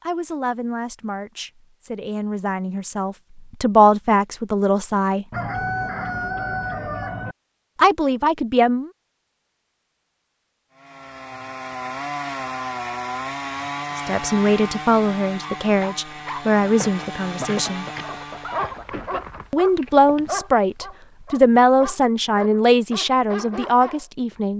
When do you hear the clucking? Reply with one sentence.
You can hear the clucking from 5.3 to 7.3 s and from 16.9 to 19.5 s.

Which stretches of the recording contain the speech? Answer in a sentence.
You can hear the speech from 0.0 to 5.2 s, from 7.8 to 8.9 s, from 13.9 to 17.9 s and from 19.5 to 24.5 s.